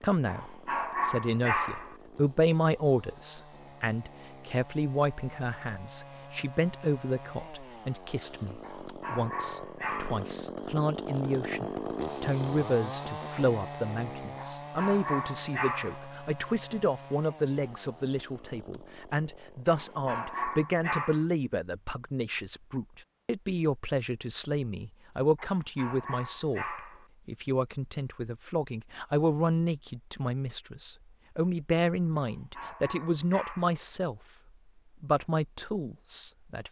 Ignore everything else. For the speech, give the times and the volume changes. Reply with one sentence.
The speech can be heard from 0.0 to 34.2 s, at a steady volume; and briefly from 35.0 to 36.6 s.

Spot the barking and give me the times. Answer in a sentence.
The barking can be heard from 0.2 to 1.9 s, from 8.6 to 10.3 s, from 14.3 to 16.1 s, from 19.6 to 21.2 s, from 25.4 to 27.1 s and from 32.1 to 33.9 s.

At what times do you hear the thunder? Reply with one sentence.
The thunder can't be heard in this clip.